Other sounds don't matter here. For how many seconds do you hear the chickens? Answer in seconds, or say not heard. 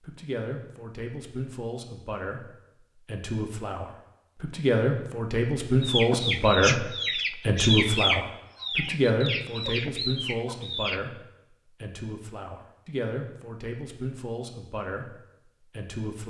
5 s.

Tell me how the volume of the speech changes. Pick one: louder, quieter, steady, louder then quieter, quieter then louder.
louder then quieter.